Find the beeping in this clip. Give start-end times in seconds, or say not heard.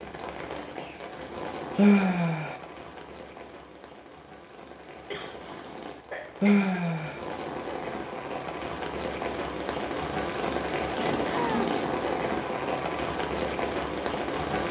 not heard.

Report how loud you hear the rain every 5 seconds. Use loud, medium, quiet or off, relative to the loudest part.
medium, medium, loud.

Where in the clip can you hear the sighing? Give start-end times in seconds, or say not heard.
1.8-2.5, 6.4-7.2, 11.2-11.7.